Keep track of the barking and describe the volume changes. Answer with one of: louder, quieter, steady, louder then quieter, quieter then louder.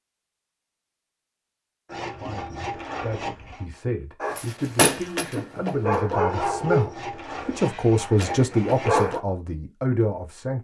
quieter then louder.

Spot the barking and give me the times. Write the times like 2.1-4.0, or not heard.
4.2-9.2.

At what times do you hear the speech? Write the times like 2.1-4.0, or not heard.
2.1-10.6.